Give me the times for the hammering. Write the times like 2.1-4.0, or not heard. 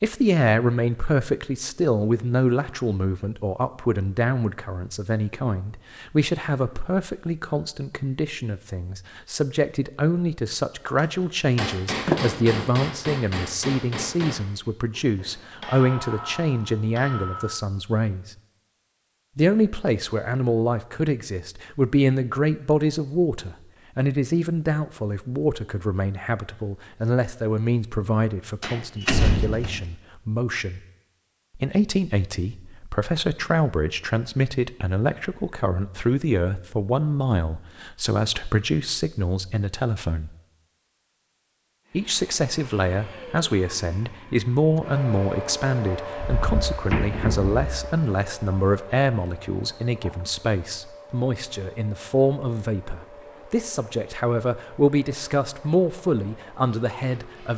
10.9-17.6.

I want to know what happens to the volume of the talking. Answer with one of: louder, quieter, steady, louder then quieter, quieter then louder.
steady.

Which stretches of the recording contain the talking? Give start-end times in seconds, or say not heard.
0.0-18.3, 19.4-30.8, 31.6-40.4, 41.9-57.5.